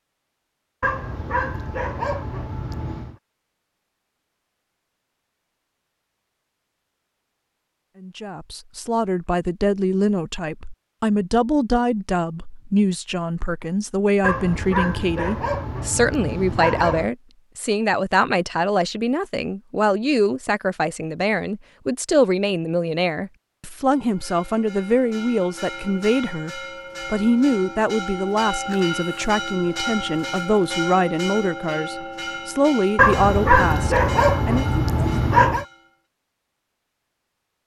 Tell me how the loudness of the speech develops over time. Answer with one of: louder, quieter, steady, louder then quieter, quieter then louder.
steady.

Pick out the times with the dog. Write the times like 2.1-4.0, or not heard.
0.8-3.1, 14.2-17.1, 33.0-35.6.